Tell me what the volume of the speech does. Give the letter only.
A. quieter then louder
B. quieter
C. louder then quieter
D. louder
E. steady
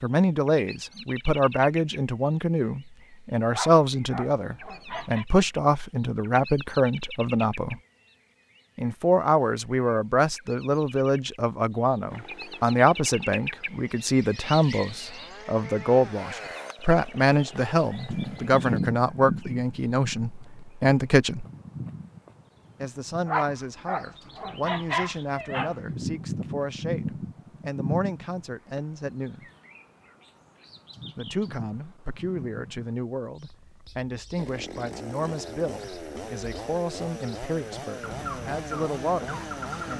B.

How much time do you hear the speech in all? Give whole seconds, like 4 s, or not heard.
36 s.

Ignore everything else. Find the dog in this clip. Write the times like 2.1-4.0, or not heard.
3.5-5.2, 23.2-25.8.